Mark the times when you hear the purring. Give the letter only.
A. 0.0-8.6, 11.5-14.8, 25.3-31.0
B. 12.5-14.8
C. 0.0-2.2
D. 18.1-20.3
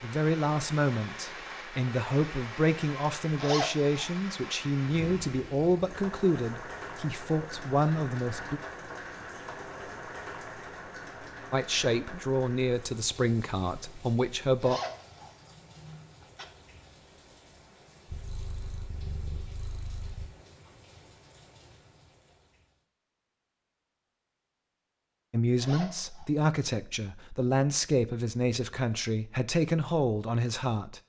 D.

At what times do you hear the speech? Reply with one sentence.
The speech can be heard from 0.0 to 8.6 s, from 11.5 to 14.8 s and from 25.3 to 31.0 s.